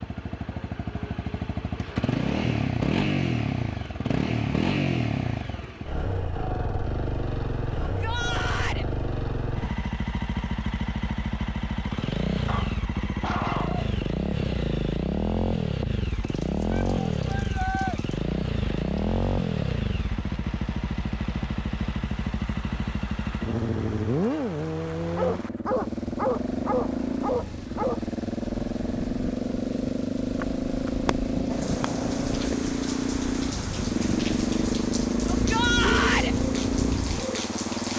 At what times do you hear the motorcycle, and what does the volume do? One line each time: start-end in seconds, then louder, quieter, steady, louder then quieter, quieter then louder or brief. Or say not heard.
0.0-37.9 steady.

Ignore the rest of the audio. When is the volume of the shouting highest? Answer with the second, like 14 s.
36 s.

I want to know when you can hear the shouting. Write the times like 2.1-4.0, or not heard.
7.8-8.8, 16.7-18.0, 35.3-36.4.